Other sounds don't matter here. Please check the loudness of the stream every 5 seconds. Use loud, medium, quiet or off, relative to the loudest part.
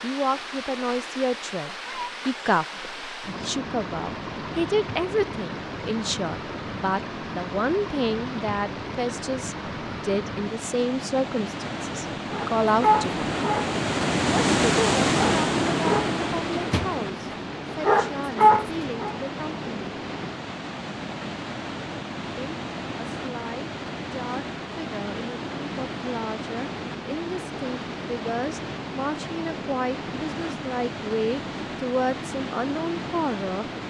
medium, medium, loud, loud, medium, medium, medium.